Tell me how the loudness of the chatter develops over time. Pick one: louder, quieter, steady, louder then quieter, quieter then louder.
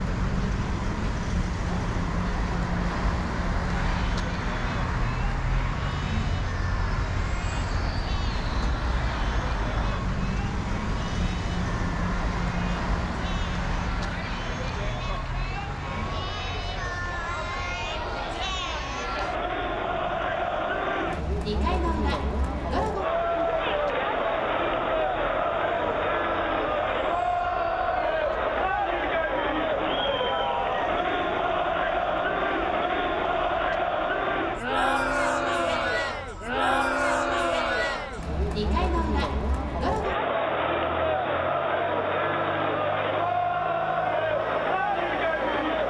louder.